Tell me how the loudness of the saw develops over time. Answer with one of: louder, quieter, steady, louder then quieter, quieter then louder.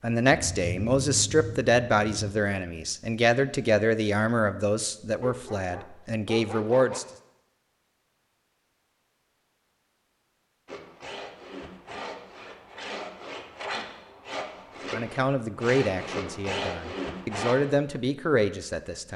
louder.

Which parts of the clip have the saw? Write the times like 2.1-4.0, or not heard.
10.7-17.6.